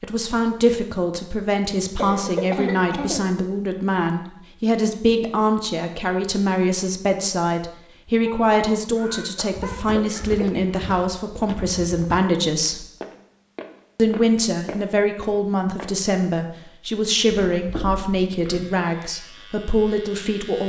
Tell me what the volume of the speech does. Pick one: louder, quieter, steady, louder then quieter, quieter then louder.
steady.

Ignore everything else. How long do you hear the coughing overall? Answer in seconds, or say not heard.
5 s.